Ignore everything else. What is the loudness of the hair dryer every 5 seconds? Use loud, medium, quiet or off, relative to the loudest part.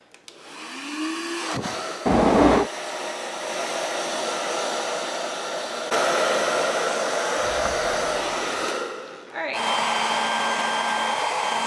medium, loud, loud.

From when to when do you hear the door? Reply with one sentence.
You can hear the door from 2.0 to 2.7 s and from 7.3 to 8.6 s.